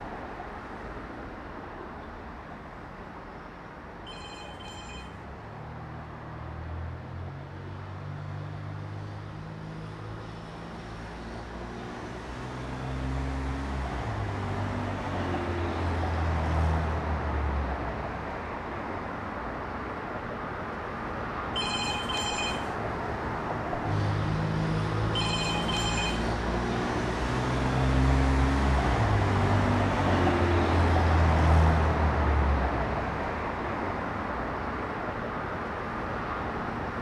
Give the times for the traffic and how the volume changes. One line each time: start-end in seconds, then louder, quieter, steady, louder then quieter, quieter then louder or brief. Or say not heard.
0.0-36.9 louder.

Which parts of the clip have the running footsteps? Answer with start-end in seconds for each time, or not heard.
not heard.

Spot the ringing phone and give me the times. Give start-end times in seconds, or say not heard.
4.0-5.2, 21.6-22.8, 25.1-26.4.